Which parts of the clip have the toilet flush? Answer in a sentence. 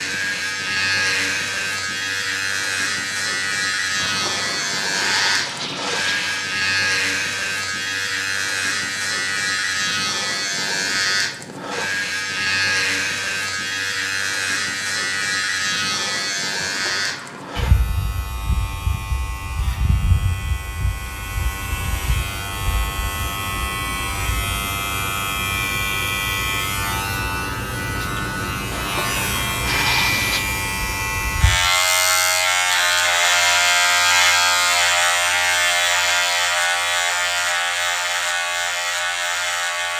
The toilet flush can be heard from 4.0 to 6.5 s, from 16.6 to 17.6 s and from 28.7 to 30.4 s.